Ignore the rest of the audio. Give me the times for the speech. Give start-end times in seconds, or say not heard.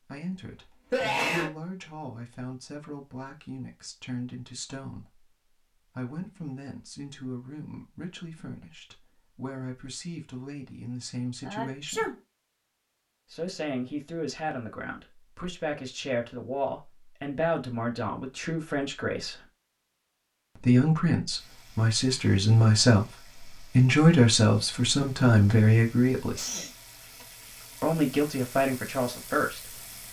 0.0-12.1, 13.3-19.4, 20.6-26.4, 27.8-30.0.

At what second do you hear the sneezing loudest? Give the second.
1 s.